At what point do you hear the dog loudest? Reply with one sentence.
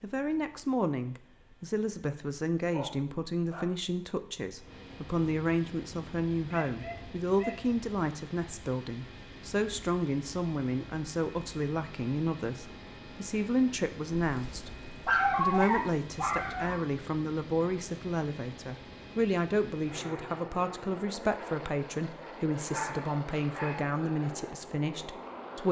The loudest moment of the dog is at 15 seconds.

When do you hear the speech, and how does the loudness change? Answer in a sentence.
The speech can be heard from 0.0 to 25.6 s, at a steady volume.